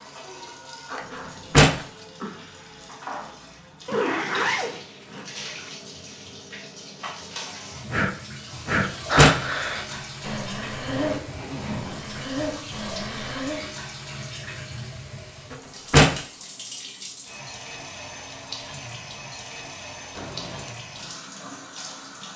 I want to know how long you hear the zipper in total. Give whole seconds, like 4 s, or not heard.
4 s.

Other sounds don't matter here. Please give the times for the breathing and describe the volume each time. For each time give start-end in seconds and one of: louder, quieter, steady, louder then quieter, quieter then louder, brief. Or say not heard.
7.9-13.6 quieter then louder.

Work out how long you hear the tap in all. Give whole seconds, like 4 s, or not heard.
22 s.